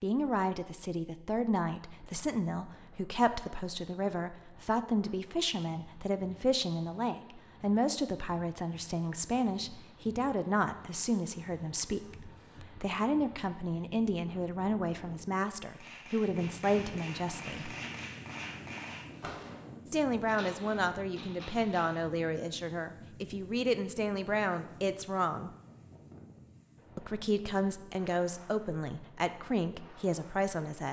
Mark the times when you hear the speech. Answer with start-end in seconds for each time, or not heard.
0.0-17.8, 19.9-25.5, 26.9-30.8.